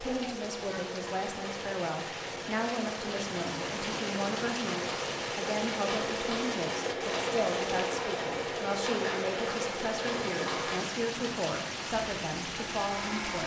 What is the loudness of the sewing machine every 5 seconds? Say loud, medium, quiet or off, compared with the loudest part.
medium, loud, loud.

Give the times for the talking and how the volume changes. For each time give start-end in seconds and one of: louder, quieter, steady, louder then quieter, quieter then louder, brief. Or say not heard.
0.0-13.4 steady.